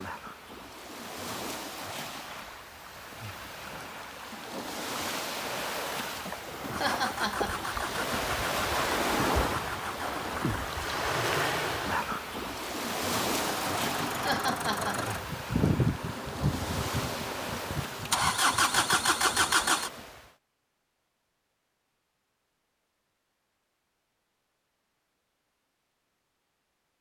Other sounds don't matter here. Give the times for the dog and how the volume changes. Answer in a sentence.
You can't hear the dog here.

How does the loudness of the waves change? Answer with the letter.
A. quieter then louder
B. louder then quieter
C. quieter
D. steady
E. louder
B.